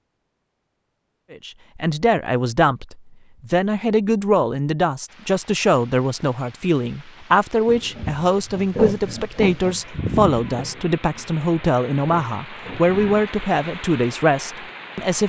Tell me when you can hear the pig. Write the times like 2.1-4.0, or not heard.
7.7-13.3.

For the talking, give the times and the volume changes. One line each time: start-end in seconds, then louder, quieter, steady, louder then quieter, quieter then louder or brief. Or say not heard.
1.3-15.2 steady.